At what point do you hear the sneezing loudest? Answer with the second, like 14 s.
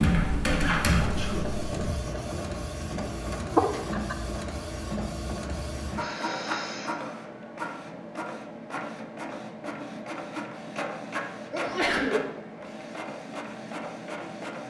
12 s.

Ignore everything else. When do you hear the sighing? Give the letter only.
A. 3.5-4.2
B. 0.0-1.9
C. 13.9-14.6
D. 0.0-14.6
A.